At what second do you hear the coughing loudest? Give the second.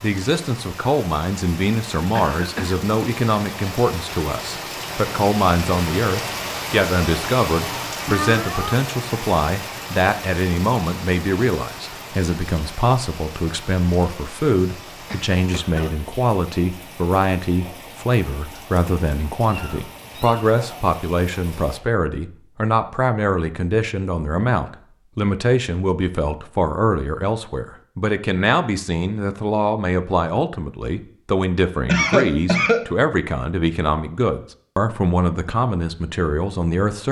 32 s.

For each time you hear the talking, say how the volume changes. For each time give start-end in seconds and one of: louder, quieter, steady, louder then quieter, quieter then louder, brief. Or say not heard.
0.0-37.0 steady.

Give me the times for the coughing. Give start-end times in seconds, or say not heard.
2.1-2.8, 15.1-16.0, 31.9-32.9.